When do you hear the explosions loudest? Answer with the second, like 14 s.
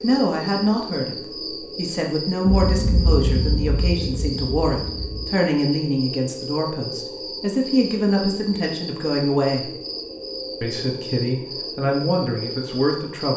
3 s.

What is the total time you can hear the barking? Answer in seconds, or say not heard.
not heard.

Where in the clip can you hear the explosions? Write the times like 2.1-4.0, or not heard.
2.5-5.3.